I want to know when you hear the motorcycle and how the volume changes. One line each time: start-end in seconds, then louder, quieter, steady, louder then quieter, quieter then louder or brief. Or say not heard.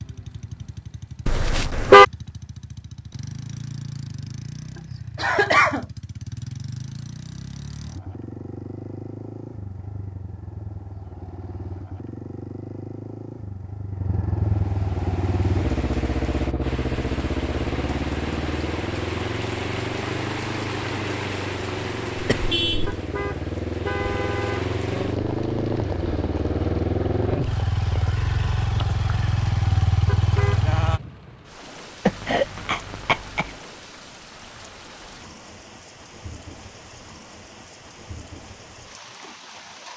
0.0-31.0 louder.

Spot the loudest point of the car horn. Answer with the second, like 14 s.
2 s.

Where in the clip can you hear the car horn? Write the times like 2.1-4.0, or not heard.
1.2-2.0, 22.9-24.6, 30.1-30.6.